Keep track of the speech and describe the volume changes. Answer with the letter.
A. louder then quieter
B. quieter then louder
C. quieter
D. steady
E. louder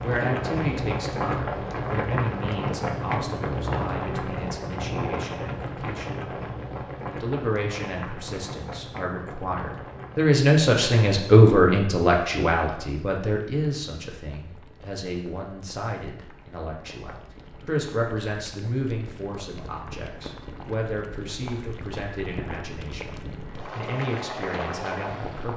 A.